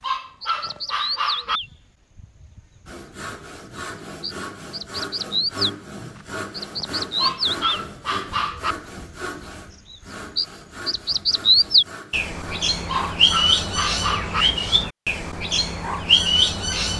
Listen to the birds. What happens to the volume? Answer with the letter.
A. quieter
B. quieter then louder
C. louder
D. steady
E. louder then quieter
C.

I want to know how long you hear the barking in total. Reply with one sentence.
The barking can be heard for 5 seconds in total.